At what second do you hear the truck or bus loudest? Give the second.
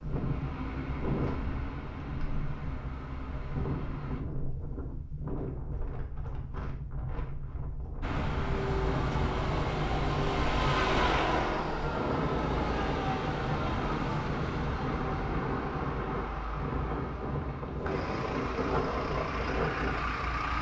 11 s.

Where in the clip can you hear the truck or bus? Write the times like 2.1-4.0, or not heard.
0.0-4.2, 8.0-20.5.